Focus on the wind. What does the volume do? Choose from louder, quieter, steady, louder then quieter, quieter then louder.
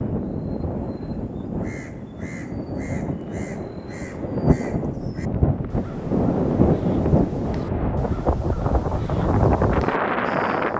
louder.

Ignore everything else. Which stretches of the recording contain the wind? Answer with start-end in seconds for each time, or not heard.
0.0-10.7.